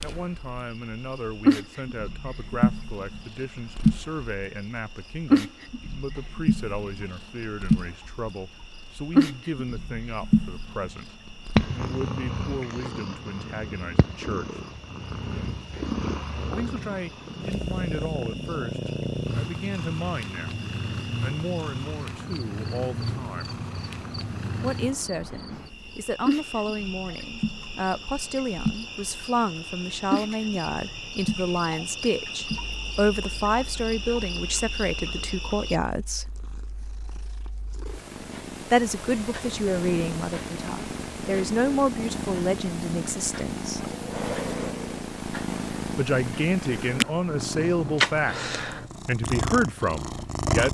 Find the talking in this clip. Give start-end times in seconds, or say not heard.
0.0-14.6, 16.6-20.6, 21.2-23.6, 24.6-36.4, 38.7-43.8, 46.0-50.7.